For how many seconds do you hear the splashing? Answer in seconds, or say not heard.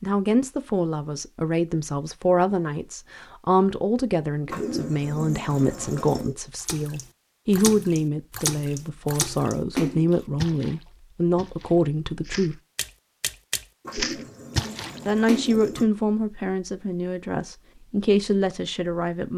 9 s.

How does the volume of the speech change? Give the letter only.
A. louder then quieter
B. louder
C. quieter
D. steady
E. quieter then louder
D.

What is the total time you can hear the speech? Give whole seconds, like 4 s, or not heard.
17 s.